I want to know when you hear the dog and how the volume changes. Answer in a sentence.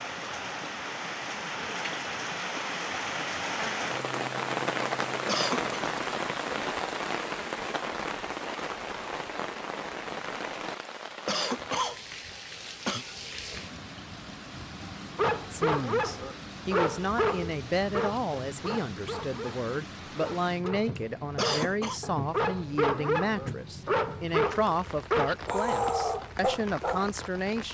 You can hear the dog from 15.2 to 27.1 s, getting quieter then louder.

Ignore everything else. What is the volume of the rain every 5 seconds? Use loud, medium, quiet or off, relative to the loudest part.
loud, loud, medium, medium, medium, medium.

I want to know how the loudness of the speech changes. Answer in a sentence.
The loudness of the speech stays about the same.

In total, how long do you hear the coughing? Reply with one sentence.
You can hear the coughing for 3 seconds altogether.